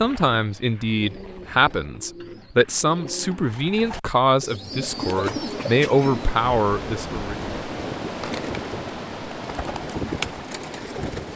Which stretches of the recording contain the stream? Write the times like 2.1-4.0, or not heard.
4.5-11.3.